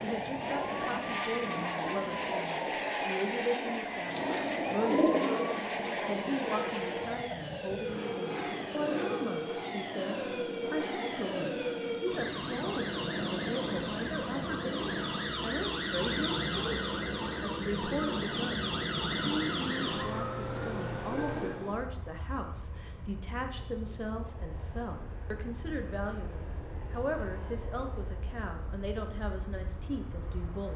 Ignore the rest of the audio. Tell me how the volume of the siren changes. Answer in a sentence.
The loudness of the siren goes up.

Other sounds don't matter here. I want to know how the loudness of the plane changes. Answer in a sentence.
The loudness of the plane goes down.